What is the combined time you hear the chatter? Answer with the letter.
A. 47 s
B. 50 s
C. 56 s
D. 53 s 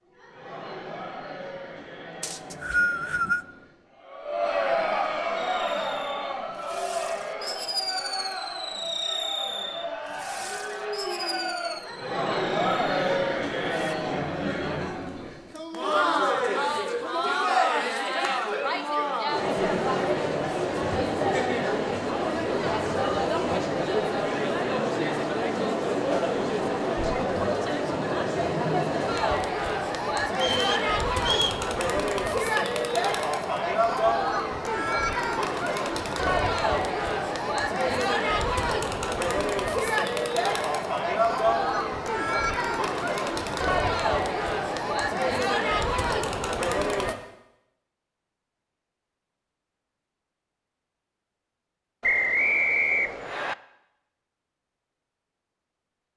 A.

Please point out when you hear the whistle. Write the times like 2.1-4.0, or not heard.
2.2-3.5, 30.4-31.6, 52.0-53.5.